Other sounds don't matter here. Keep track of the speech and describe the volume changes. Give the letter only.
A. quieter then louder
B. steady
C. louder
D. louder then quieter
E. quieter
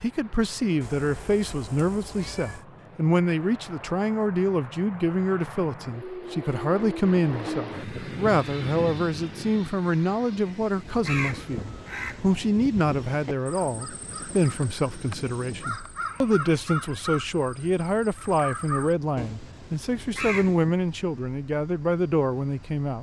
B.